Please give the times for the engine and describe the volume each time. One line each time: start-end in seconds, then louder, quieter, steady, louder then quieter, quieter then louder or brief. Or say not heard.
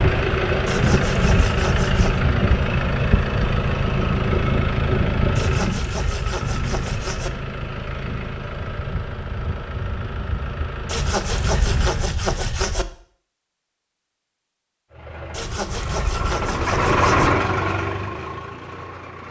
0.0-12.2 quieter
14.9-19.2 louder then quieter.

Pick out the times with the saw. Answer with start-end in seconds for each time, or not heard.
0.7-2.2, 5.3-7.3, 10.8-12.8, 15.3-17.3.